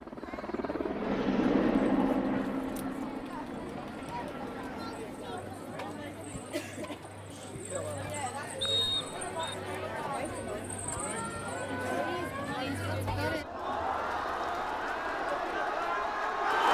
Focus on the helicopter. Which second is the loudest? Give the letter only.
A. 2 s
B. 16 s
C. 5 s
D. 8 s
A.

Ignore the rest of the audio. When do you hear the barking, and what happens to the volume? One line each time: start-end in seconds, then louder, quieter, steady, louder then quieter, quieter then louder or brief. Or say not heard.
not heard.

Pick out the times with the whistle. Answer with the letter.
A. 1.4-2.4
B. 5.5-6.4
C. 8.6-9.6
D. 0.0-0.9
C.